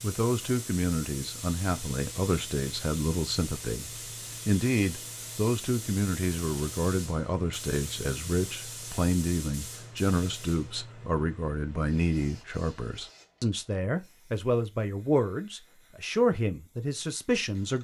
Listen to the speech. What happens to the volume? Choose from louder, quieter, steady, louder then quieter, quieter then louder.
steady.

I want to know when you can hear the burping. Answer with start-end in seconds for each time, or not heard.
not heard.